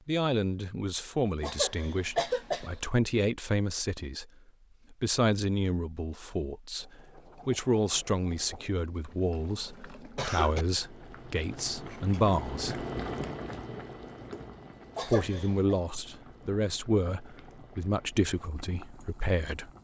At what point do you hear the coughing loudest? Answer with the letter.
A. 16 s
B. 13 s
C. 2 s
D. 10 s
C.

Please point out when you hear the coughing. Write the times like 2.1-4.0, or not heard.
1.4-2.7, 9.3-10.7, 14.9-15.8.